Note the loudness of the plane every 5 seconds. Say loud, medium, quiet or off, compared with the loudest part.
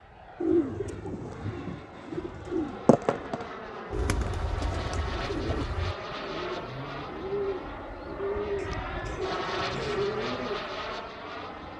medium, loud, loud.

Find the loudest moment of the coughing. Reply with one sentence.
The volume of the coughing peaks at 10 seconds.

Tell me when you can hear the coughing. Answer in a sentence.
You can hear the coughing from 8.6 to 10.1 s.